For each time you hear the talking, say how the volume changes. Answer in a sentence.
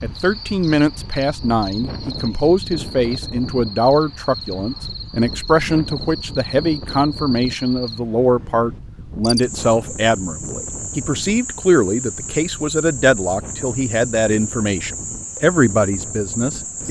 You can hear the talking from 0.0 to 16.8 s, at a steady volume.